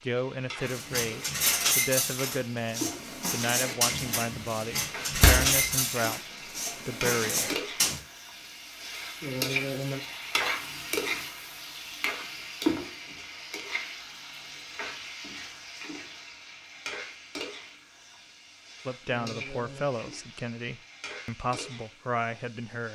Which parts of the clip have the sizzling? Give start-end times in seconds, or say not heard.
0.0-22.8.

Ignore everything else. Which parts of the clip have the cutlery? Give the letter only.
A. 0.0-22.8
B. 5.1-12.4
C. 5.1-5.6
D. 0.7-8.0
D.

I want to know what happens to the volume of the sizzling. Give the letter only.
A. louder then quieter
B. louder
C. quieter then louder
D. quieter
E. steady
A.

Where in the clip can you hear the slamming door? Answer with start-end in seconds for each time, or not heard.
5.1-5.6.